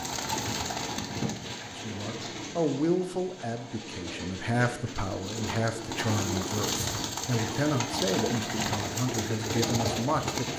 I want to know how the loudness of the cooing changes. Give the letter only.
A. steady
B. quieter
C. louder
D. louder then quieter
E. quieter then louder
E.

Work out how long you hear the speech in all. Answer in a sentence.
You can hear the speech for 9 seconds altogether.